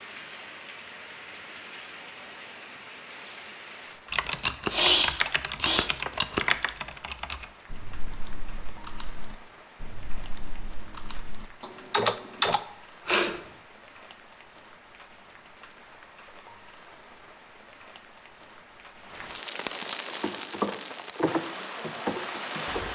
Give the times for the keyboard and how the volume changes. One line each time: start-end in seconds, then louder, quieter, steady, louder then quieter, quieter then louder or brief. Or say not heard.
4.1-12.6 quieter then louder
20.2-22.8 brief.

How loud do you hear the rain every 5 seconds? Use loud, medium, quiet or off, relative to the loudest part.
medium, quiet, quiet, medium, loud.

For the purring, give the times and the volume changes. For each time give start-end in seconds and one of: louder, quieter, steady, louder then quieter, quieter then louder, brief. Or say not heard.
not heard.